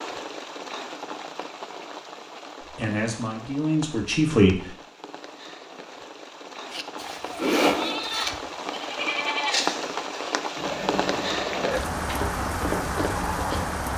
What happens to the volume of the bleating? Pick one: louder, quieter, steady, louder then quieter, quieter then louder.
quieter.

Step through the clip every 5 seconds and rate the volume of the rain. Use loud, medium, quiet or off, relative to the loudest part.
medium, medium, loud.